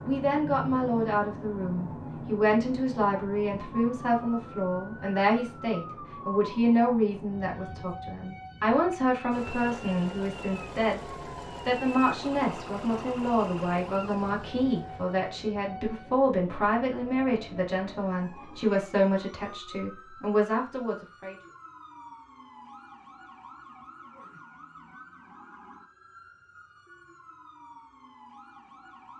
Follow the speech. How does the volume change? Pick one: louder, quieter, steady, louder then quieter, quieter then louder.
steady.